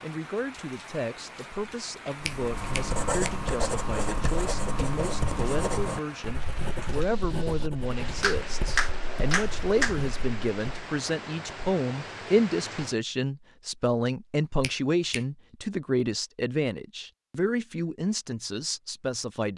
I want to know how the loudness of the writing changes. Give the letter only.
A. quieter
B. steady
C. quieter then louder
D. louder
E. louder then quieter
A.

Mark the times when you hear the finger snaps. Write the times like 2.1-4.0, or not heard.
2.2-3.3, 8.2-9.9, 14.6-15.2.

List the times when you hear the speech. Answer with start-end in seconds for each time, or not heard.
0.0-19.5.